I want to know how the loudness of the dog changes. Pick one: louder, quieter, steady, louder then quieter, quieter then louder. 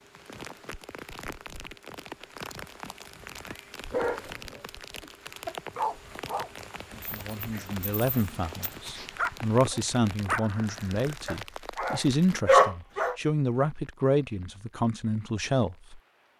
quieter then louder.